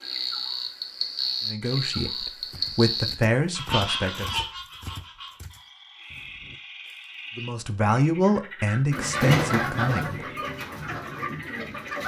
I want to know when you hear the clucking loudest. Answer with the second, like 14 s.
9 s.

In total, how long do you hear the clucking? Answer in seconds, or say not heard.
3 s.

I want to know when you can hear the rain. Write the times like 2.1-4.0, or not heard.
not heard.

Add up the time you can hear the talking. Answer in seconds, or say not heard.
6 s.